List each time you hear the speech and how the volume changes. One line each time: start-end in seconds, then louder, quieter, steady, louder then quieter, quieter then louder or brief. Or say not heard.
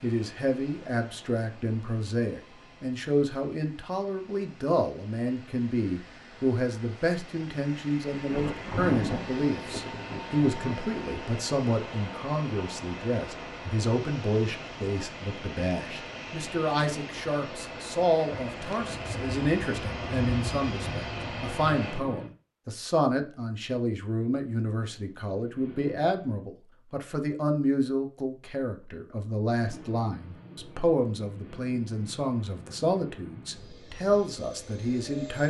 0.0-35.4 steady.